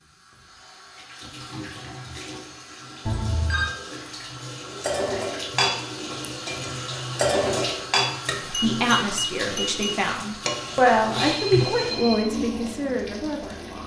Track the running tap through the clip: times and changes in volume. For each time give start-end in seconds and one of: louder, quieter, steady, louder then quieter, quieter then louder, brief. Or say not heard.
0.0-13.8 louder.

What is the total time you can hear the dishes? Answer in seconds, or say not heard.
6 s.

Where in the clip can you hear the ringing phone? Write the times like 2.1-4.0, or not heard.
3.0-3.7, 10.4-12.2.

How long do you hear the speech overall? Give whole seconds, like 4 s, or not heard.
5 s.